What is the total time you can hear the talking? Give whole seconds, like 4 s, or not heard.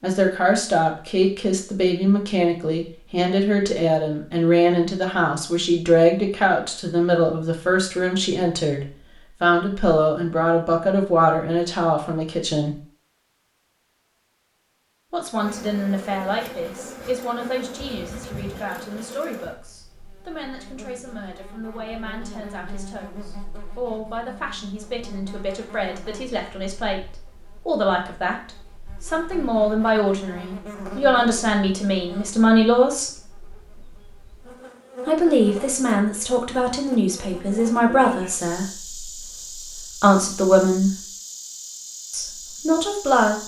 38 s.